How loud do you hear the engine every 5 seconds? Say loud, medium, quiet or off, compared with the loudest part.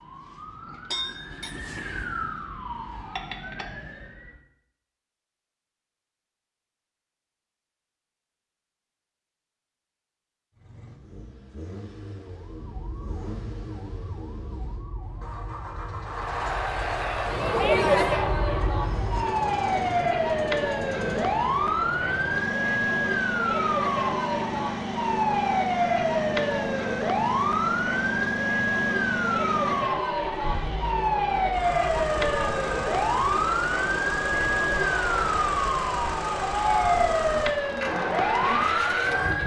off, off, quiet, medium, medium, loud, loud, loud.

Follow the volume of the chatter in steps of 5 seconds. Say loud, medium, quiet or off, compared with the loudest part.
off, off, off, loud, medium, medium, medium, medium.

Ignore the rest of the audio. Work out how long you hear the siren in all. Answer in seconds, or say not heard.
32 s.